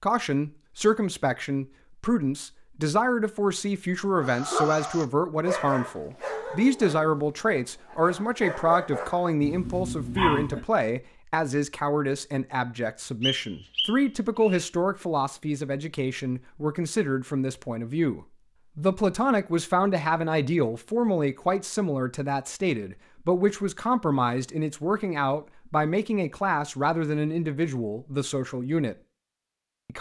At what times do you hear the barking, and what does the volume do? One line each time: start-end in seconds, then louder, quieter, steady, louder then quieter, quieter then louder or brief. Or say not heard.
4.2-10.7 quieter then louder.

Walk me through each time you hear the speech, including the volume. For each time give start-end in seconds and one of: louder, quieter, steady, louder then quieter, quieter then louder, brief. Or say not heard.
0.0-28.9 steady.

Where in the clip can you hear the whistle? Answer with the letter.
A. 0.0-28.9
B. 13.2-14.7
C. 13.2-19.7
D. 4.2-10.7
B.